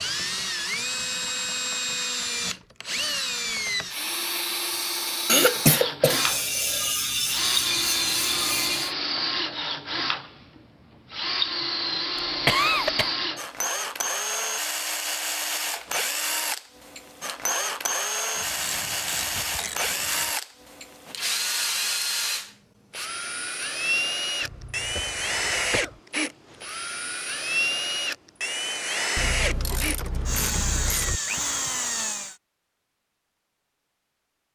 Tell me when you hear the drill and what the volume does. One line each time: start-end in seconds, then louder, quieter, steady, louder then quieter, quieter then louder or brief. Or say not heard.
0.0-32.4 steady.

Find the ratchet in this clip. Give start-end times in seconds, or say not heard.
6.0-8.9, 18.4-20.3, 29.1-31.2.